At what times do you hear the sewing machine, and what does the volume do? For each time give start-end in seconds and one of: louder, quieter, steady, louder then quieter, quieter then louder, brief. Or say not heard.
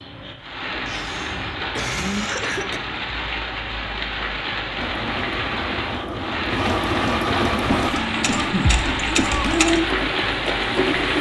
4.8-11.1 louder.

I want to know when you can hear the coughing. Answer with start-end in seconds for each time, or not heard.
0.8-2.8, 7.7-9.7.